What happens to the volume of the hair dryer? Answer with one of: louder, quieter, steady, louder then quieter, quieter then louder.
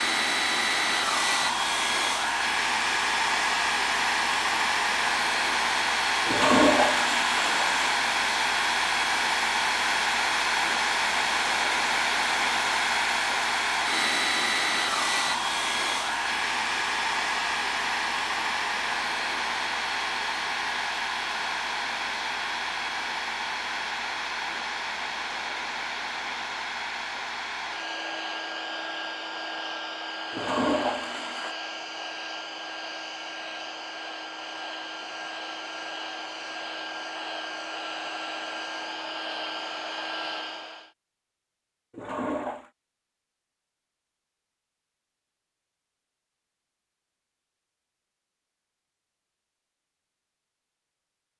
quieter.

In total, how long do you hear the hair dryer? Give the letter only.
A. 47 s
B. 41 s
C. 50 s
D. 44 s
B.